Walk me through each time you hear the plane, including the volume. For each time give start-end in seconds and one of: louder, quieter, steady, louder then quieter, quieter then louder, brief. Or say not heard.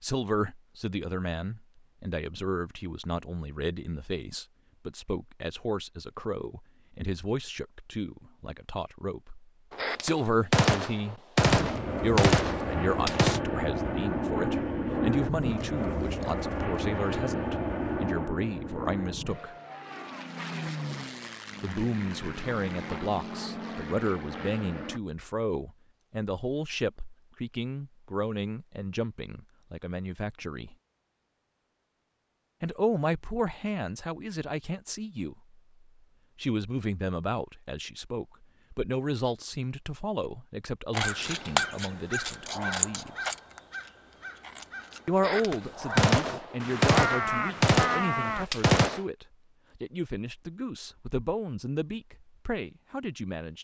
11.4-25.0 quieter.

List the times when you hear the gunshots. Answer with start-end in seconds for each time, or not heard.
9.7-13.4, 45.1-49.0.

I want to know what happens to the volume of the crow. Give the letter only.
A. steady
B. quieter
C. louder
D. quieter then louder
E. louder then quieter
D.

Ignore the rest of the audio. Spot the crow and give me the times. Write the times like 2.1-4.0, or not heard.
40.9-48.5.